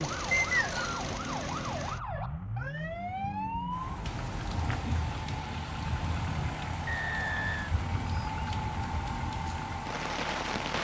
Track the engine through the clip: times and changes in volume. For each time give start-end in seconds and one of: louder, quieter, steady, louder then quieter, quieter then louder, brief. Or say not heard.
0.0-10.7 steady.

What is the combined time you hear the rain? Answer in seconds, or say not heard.
7 s.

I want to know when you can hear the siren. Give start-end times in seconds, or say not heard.
0.0-4.7.